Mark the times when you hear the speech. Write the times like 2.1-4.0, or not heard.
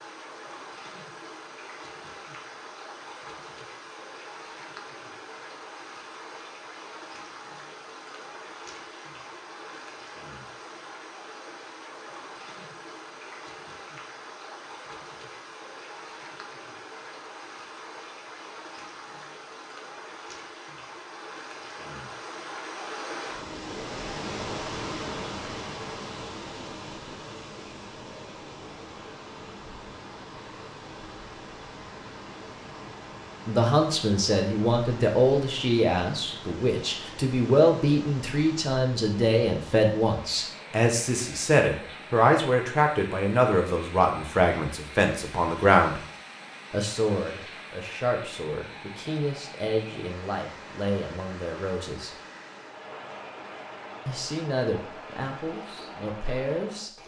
33.5-46.0, 46.7-52.1, 54.0-56.9.